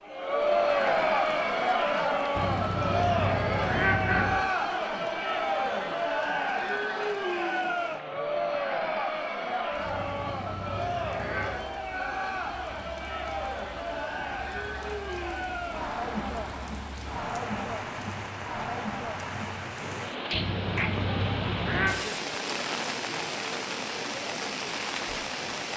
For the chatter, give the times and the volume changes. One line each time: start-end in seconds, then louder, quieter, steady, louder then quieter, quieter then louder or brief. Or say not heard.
0.0-25.7 quieter.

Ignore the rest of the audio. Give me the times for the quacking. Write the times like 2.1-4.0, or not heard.
2.4-4.3, 9.8-11.6, 20.3-21.9.